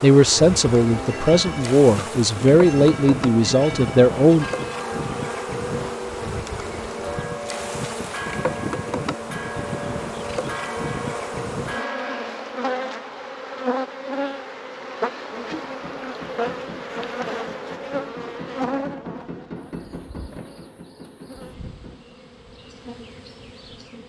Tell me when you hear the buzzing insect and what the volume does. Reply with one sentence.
The buzzing insect can be heard from 0.0 to 24.0 s, getting quieter.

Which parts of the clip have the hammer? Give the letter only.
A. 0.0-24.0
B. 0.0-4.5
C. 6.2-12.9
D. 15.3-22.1
D.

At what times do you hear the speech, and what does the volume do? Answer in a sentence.
The speech can be heard from 0.0 to 4.5 s, at a steady volume.